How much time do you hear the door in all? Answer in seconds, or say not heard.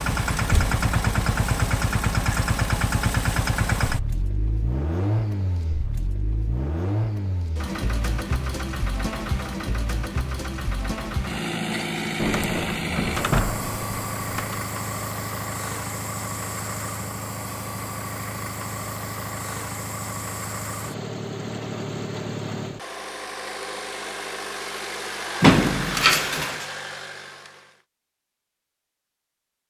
4 s.